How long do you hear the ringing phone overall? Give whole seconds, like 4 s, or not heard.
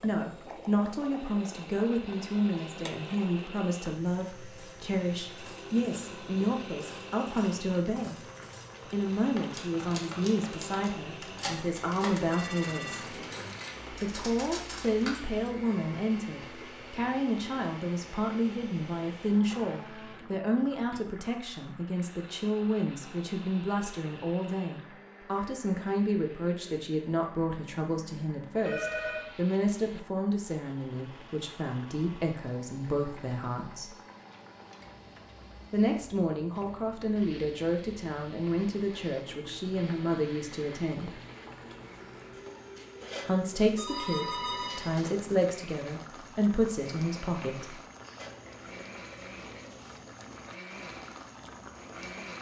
3 s.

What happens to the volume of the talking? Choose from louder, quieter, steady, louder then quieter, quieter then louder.
steady.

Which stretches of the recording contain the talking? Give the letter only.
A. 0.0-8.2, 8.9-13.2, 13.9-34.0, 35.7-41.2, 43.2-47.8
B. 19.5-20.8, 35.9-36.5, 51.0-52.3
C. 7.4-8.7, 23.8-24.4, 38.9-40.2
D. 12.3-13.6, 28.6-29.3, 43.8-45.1
A.